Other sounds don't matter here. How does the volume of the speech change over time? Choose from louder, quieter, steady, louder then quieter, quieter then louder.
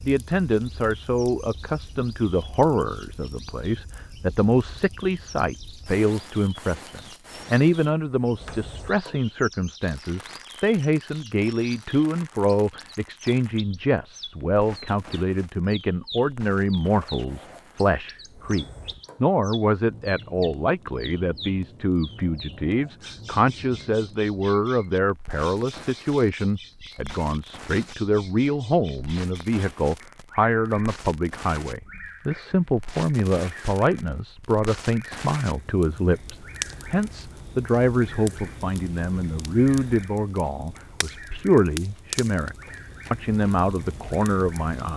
steady.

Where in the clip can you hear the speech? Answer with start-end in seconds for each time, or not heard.
0.0-44.9.